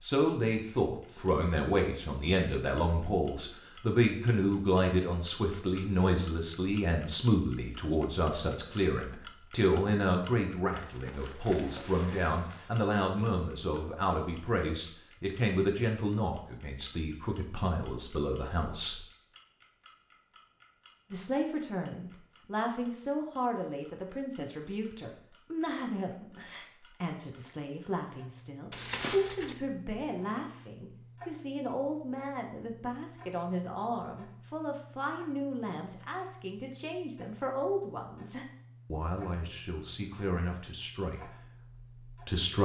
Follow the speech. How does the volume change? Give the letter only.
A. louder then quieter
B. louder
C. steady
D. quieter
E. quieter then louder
D.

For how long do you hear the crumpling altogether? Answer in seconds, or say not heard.
3 s.